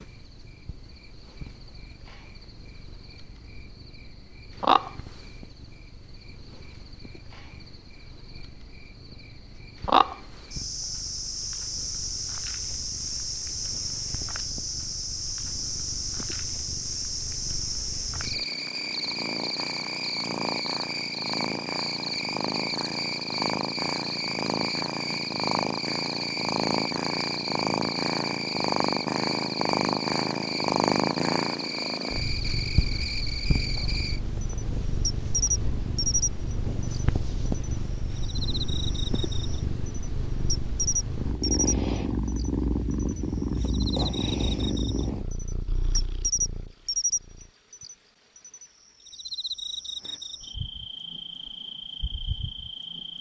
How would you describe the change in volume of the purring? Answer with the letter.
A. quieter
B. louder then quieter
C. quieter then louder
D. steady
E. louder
E.